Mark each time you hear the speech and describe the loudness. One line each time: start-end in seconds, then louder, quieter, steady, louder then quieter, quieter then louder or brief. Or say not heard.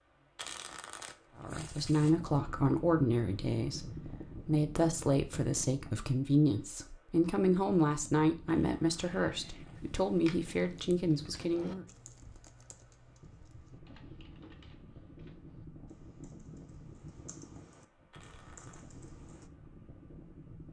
1.4-11.8 steady.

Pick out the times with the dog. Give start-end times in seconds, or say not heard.
not heard.